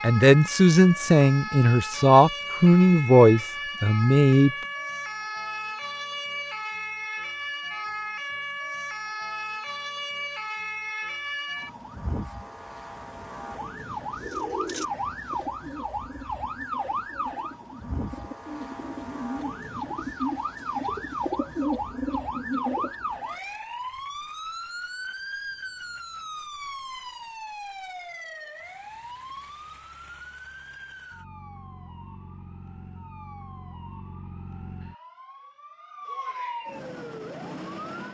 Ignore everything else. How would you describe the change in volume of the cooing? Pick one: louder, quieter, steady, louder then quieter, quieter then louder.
quieter then louder.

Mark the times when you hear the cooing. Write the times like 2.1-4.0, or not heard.
14.2-22.9.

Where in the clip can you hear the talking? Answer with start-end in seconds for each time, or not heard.
0.0-4.5.